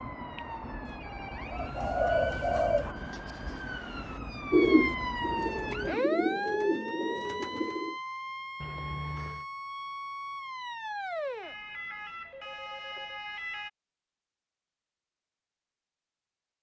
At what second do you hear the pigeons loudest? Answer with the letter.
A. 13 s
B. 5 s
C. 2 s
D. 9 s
B.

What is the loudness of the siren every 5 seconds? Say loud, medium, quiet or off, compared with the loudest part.
loud, loud, loud, off.